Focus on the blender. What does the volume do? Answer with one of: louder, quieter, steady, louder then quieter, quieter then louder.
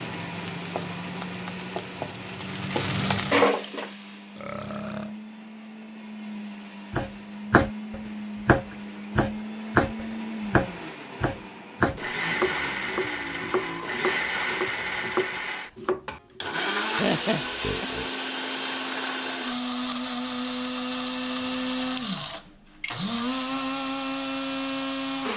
louder.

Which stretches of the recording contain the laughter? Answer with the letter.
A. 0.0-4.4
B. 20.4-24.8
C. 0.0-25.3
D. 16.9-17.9
D.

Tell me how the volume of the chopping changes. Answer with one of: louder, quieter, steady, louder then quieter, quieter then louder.
quieter.